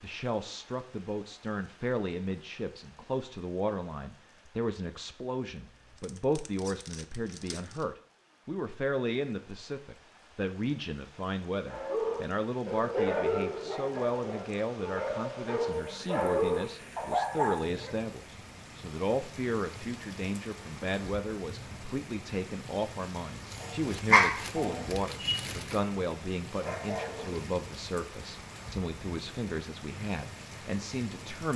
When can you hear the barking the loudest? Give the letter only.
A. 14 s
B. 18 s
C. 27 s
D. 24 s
D.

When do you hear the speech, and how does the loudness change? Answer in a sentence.
The speech can be heard from 0.0 to 31.5 s, at a steady volume.